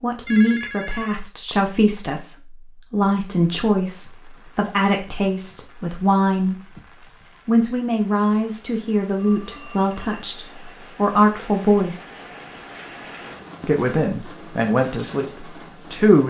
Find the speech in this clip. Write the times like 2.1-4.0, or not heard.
0.0-6.6, 7.5-12.0, 13.6-16.2.